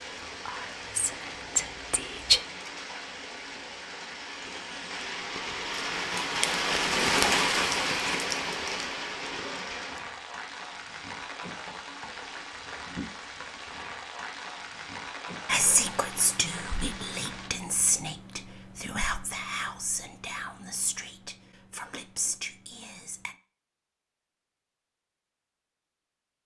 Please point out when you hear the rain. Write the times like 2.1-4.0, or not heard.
0.0-17.5.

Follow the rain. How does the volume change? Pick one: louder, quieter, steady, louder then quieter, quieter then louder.
louder then quieter.